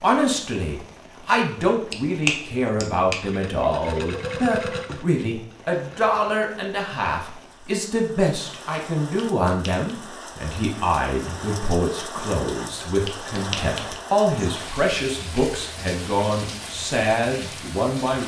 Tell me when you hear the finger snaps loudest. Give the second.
2 s.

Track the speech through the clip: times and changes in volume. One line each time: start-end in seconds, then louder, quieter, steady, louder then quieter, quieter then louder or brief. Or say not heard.
0.0-18.2 steady.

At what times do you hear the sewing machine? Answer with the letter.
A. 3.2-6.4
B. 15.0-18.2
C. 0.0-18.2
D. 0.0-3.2
A.